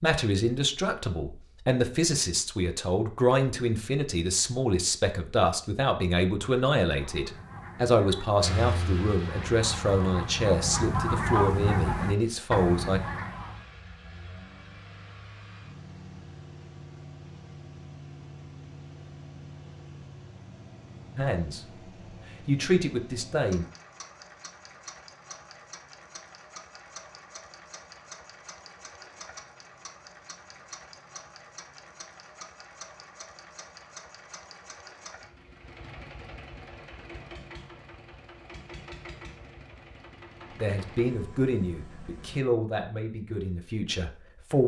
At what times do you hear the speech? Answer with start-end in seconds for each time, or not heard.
0.0-13.0, 21.1-23.6, 40.5-44.6.